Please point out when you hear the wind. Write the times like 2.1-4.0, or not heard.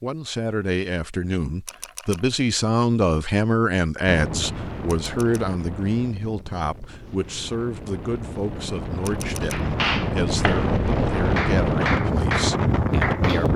4.0-13.5.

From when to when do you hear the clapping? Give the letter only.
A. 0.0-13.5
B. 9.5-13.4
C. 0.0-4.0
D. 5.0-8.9
B.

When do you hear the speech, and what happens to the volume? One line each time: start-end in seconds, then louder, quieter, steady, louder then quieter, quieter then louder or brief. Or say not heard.
0.0-13.5 quieter.